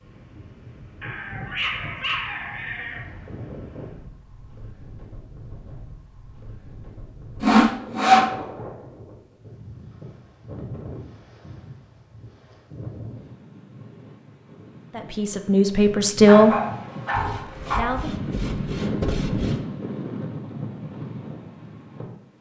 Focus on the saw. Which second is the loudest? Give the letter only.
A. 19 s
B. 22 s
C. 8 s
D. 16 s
C.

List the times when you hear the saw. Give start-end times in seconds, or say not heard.
7.4-8.3, 17.1-19.6.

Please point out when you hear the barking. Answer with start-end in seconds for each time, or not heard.
1.0-3.0, 16.2-18.0.